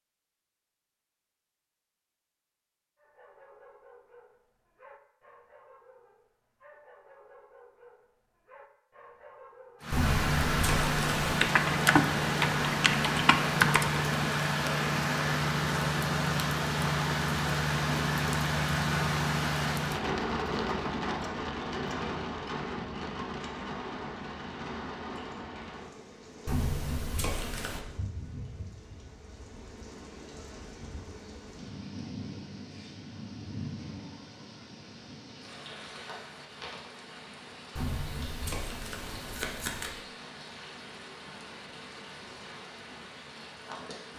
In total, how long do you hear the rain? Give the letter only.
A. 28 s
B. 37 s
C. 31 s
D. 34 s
D.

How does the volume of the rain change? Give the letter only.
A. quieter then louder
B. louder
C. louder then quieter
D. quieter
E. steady
D.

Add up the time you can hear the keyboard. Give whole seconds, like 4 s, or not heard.
3 s.